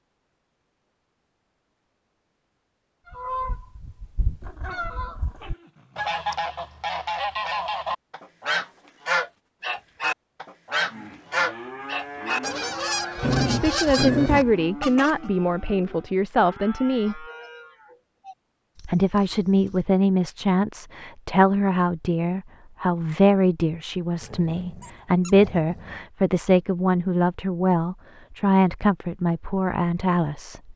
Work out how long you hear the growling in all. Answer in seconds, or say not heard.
5 s.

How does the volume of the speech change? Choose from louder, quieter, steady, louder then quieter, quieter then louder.
steady.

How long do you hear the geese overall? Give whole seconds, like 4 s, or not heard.
12 s.